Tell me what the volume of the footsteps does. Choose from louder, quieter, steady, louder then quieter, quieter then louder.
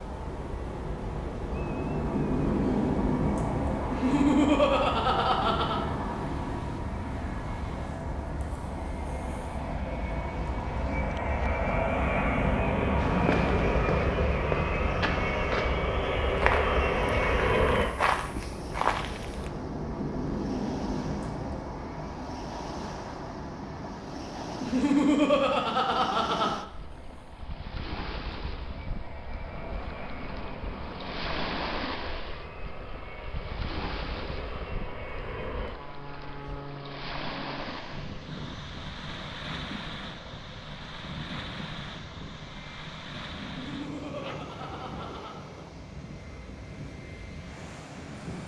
quieter then louder.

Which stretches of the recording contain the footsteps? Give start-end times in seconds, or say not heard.
12.9-19.5.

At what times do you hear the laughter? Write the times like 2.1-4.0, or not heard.
3.9-5.8, 24.6-26.5, 43.5-45.4.